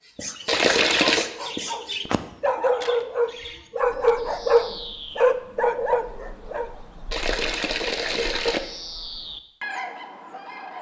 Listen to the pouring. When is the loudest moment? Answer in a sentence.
The volume of the pouring peaks at 1 second.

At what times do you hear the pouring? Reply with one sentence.
You can hear the pouring from 0.5 to 1.2 s and from 7.1 to 8.6 s.